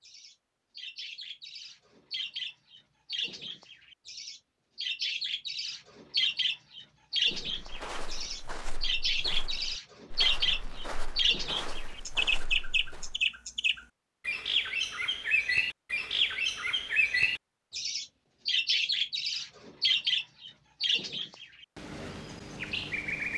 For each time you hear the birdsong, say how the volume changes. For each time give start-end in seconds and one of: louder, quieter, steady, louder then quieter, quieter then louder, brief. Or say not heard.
0.0-23.3 louder.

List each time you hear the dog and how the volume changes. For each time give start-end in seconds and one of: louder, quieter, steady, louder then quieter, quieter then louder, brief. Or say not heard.
not heard.